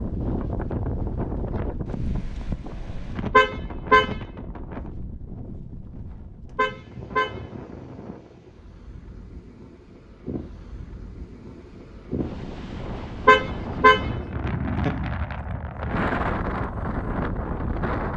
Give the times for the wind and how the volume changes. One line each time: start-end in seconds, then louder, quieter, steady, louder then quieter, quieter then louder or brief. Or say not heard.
0.0-18.1 quieter then louder.